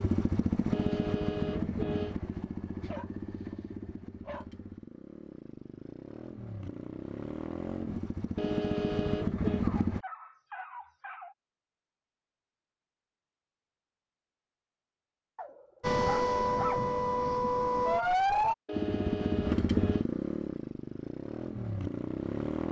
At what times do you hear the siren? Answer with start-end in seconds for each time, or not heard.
15.8-18.6.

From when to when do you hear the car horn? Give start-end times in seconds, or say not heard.
0.7-2.1, 8.3-9.7, 18.6-20.1.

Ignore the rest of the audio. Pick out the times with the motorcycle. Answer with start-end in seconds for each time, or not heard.
0.0-10.1, 18.7-22.6.